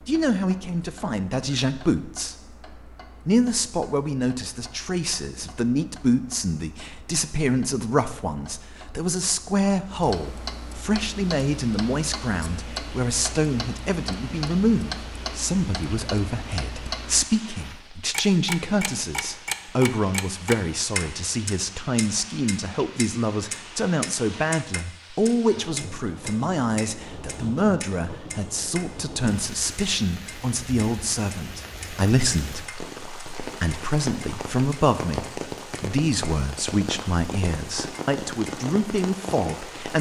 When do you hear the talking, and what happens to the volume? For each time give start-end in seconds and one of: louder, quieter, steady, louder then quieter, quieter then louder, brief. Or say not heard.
0.1-2.4 brief
3.2-39.9 steady.